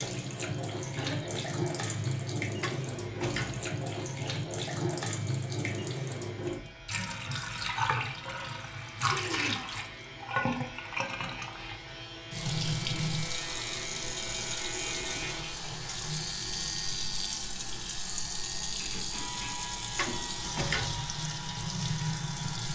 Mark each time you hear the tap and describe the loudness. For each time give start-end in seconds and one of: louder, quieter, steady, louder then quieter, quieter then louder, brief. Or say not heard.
0.0-22.7 steady.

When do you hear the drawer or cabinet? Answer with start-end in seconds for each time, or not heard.
2.6-3.7, 19.9-21.1.